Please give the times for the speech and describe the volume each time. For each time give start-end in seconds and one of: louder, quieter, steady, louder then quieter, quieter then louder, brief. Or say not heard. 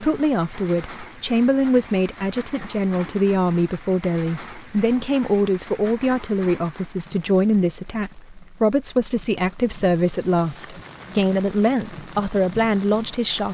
0.0-13.5 steady.